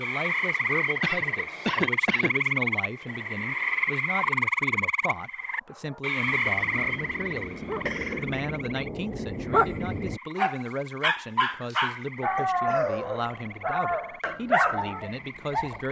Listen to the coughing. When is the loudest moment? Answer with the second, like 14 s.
2 s.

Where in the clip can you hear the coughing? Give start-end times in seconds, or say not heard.
1.0-2.3, 6.6-8.3, 12.3-13.1.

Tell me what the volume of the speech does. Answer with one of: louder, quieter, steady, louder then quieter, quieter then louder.
steady.